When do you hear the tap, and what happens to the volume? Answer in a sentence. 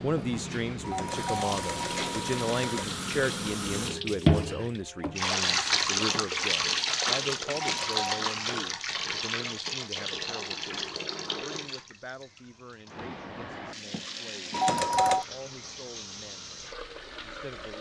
The tap can be heard from 0.0 to 17.7 s, getting louder then quieter.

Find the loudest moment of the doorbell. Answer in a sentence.
The volume of the doorbell peaks at 15 seconds.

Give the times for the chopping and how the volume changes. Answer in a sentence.
The chopping can't be heard in this clip.